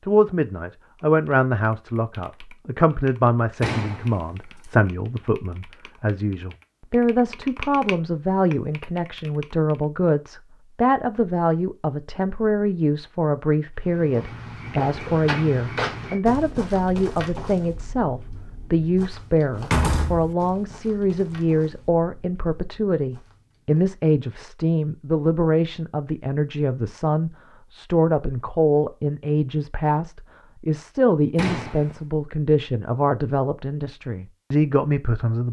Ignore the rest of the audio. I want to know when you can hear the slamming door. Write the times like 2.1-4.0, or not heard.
3.6-4.0, 19.6-20.4, 31.4-31.9.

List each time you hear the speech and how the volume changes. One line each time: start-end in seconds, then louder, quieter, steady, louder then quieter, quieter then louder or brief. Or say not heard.
0.1-35.4 steady.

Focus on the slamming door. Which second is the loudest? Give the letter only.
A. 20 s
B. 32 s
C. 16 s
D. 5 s
A.